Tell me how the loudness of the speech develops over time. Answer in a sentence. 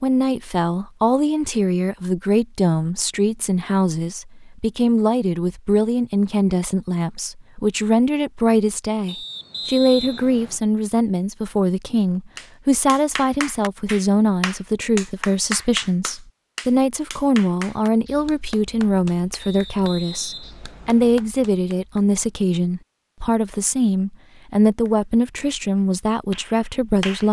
The volume of the speech stays about the same.